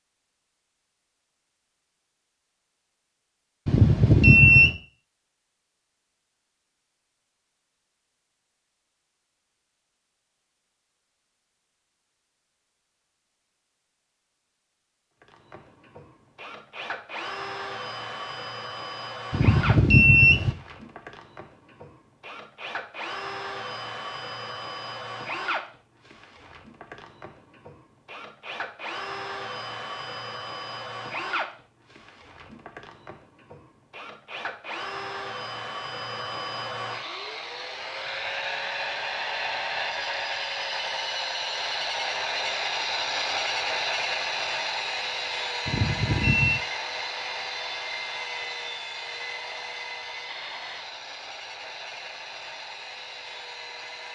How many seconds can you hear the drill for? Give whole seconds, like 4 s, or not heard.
39 s.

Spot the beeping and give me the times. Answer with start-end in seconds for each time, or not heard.
3.6-4.8, 19.3-20.6, 45.6-46.6.